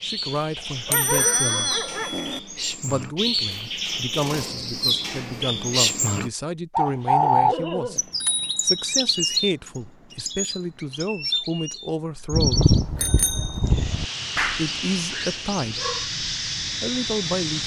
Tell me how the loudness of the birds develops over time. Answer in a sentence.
The loudness of the birds goes up, then down.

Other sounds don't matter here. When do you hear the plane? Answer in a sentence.
You can hear the plane from 13.8 to 17.6 s.